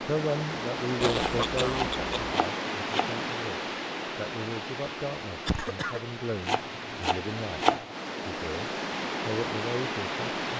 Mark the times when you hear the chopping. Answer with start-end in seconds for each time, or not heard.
1.1-3.2, 6.5-7.8.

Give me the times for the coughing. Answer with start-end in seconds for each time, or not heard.
1.0-2.4, 5.5-6.0.